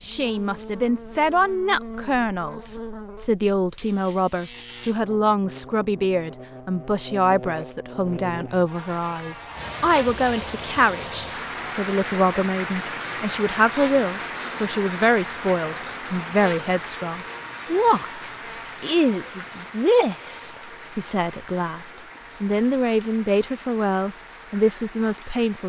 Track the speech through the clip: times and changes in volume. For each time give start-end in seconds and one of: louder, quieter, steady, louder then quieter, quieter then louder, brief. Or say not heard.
0.0-25.6 steady.